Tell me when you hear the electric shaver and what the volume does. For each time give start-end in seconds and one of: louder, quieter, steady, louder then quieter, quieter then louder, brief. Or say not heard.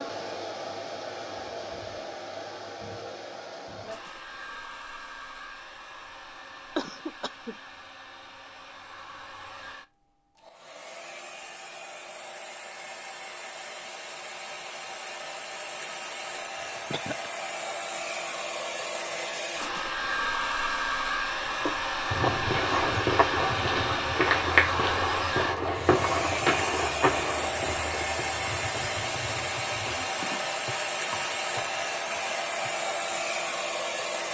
not heard.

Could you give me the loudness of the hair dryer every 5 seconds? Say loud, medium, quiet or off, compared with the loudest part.
medium, quiet, quiet, medium, loud, loud, loud.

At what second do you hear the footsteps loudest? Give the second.
24 s.